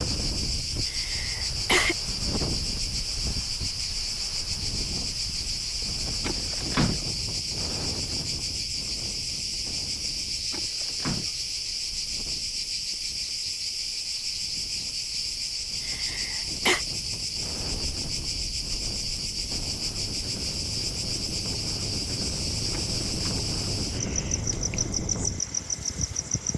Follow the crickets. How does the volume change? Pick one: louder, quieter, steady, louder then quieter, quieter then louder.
steady.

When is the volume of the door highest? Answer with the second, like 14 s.
7 s.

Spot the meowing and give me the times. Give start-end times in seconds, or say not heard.
not heard.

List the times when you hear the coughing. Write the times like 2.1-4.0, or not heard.
0.8-1.9, 15.8-16.9.